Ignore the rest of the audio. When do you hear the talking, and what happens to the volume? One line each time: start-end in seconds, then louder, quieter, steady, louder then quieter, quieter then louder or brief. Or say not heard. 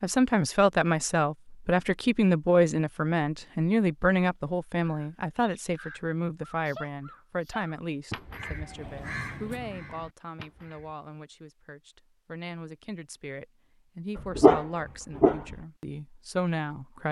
0.0-17.0 quieter then louder.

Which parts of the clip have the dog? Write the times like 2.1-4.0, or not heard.
14.2-15.6.